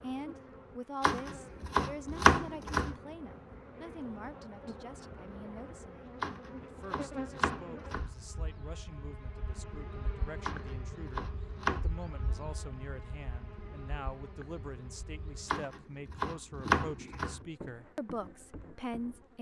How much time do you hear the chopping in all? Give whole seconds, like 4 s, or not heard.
7 s.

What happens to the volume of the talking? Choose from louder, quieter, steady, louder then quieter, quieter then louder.
quieter then louder.